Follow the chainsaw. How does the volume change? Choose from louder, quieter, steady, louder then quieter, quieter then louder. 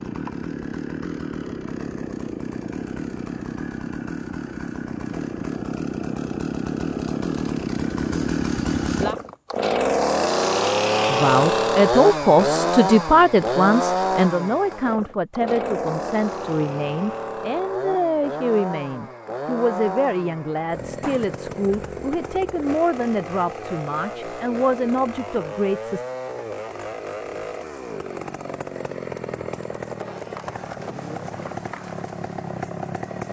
louder then quieter.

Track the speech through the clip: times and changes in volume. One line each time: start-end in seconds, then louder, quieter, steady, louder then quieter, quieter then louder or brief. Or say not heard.
11.1-26.1 quieter.